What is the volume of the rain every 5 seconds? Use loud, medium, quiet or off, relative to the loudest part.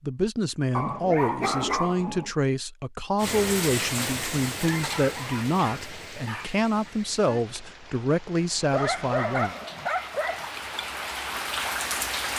loud, medium, loud.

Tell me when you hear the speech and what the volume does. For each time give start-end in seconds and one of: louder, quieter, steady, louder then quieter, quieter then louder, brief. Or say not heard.
0.0-9.6 steady.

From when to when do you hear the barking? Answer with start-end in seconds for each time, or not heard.
0.8-2.3, 4.5-6.5, 8.7-10.4.